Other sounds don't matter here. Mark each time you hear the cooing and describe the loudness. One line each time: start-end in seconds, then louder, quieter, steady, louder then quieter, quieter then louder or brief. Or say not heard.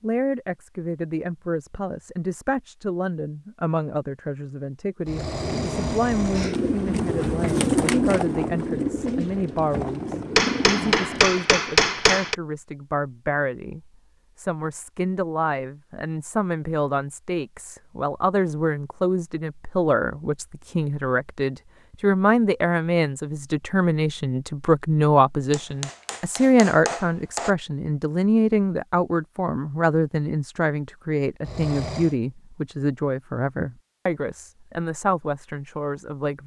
5.0-11.5 louder then quieter.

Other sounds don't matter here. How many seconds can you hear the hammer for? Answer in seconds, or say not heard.
4 s.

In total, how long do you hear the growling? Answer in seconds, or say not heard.
2 s.